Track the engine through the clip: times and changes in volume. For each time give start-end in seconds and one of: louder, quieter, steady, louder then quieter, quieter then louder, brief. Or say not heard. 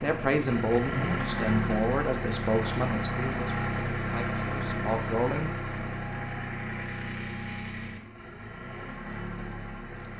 0.0-10.1 quieter.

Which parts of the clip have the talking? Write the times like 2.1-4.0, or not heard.
0.0-5.5.